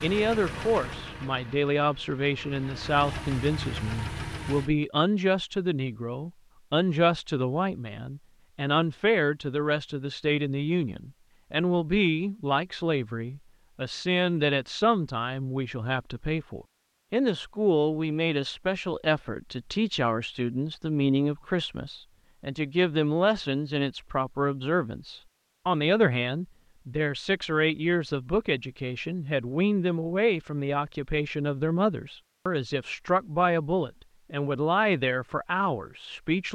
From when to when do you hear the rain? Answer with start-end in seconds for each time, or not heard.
not heard.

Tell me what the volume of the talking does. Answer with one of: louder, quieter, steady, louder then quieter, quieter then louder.
steady.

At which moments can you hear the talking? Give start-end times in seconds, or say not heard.
0.0-36.5.